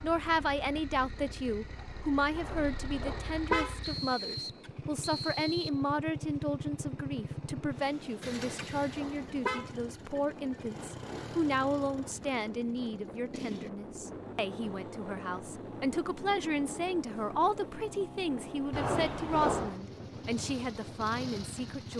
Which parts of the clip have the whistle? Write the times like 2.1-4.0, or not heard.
3.8-5.8.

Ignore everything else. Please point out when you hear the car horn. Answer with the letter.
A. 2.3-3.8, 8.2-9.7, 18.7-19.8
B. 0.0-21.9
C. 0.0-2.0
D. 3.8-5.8
A.